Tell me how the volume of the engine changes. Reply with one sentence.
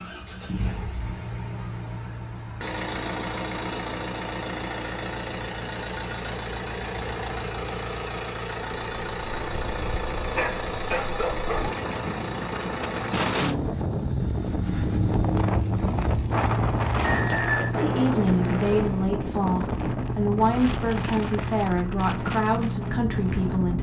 The volume of the engine stays about the same.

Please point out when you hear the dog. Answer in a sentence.
The dog can be heard from 10.3 to 11.8 s.